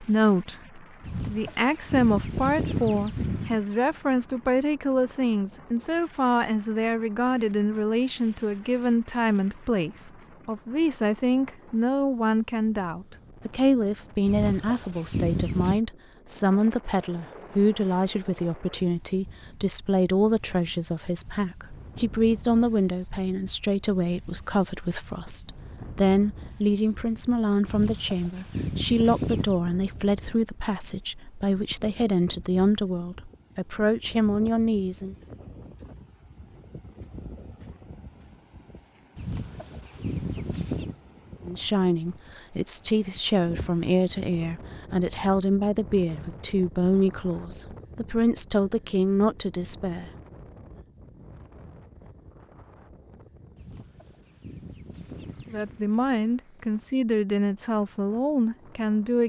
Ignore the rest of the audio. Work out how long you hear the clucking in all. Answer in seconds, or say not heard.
10 s.